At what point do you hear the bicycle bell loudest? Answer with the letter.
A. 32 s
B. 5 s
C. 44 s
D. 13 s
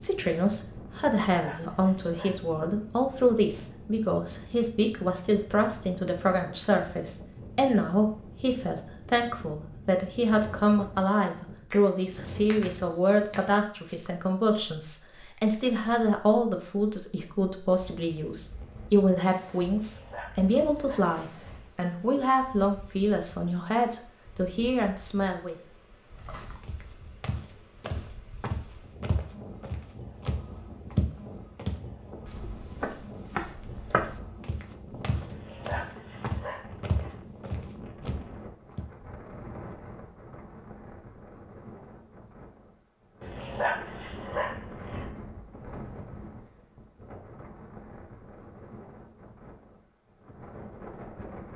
D.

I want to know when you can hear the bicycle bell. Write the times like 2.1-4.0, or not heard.
11.7-13.7.